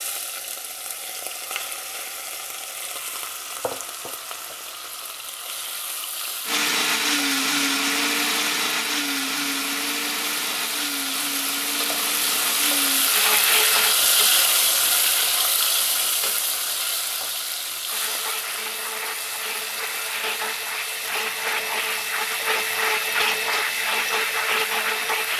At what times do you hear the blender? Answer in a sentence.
The blender can be heard from 6.5 to 13.9 s and from 17.9 to 25.3 s.